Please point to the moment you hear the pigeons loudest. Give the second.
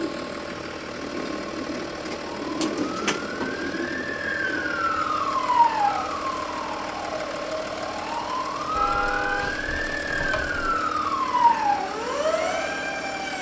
3 s.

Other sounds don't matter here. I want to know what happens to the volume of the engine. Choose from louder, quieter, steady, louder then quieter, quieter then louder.
steady.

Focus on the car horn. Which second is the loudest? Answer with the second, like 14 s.
9 s.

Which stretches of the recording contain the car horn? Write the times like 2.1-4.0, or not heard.
8.8-10.8.